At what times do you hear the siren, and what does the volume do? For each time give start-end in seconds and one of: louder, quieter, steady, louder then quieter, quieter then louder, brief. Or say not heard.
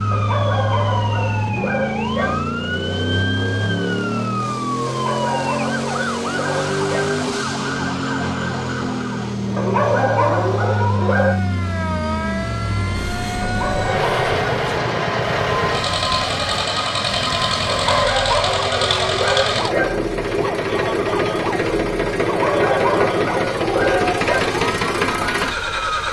0.0-26.0 steady.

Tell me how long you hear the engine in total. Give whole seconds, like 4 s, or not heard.
26 s.